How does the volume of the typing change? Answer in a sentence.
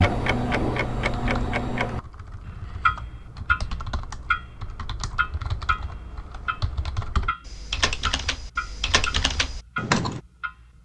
The volume of the typing goes up.